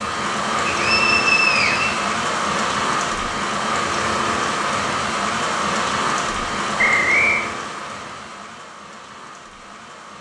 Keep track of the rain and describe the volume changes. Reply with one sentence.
The volume of the rain goes down.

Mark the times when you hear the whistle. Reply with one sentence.
The whistle can be heard from 0.7 to 2.1 s and from 6.8 to 7.5 s.